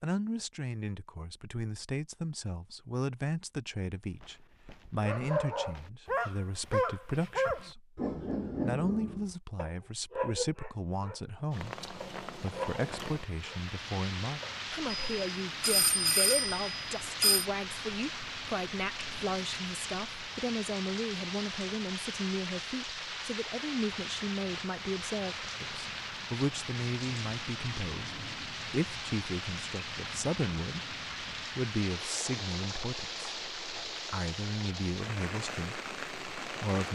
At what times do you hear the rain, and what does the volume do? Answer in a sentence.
The rain can be heard from 11.5 to 36.9 s, at a steady volume.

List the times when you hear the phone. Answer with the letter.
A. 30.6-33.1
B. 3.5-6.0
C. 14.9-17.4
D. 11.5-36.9
C.